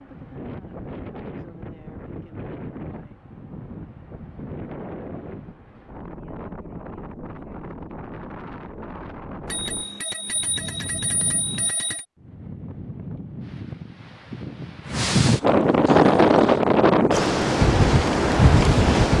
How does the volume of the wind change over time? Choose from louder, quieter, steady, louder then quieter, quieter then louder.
louder.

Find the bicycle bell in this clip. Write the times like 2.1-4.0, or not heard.
9.4-12.1.